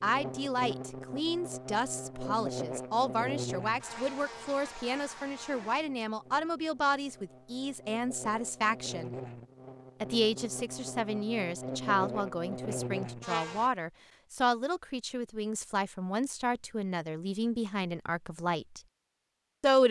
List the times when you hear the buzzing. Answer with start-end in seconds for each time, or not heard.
0.0-13.7.